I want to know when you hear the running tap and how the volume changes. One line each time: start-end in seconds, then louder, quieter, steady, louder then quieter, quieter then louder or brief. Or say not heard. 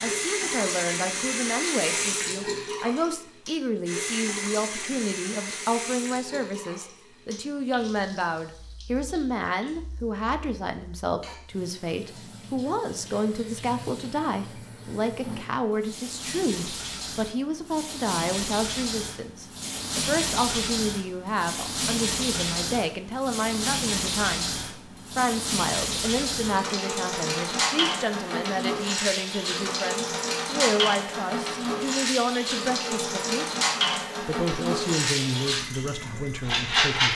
0.0-37.1 quieter then louder.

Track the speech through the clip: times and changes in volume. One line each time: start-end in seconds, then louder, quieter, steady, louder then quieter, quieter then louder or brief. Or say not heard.
0.0-33.5 steady
34.2-37.1 brief.